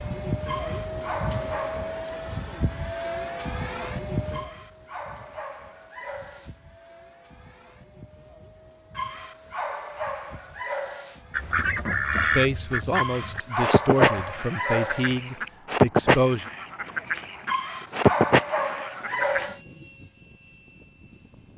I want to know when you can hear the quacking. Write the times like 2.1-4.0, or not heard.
11.3-19.4.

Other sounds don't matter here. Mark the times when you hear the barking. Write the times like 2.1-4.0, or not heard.
0.5-2.0, 4.3-6.5, 8.9-11.2, 12.9-15.2, 17.4-19.6.